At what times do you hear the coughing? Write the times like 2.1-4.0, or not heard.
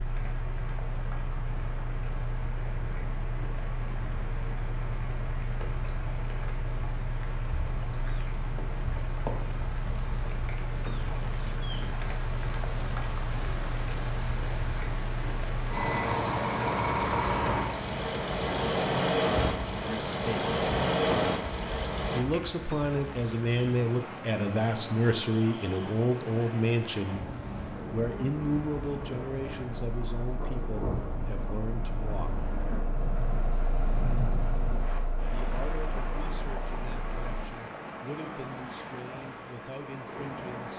not heard.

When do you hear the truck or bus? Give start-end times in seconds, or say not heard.
0.0-22.2, 29.8-37.5.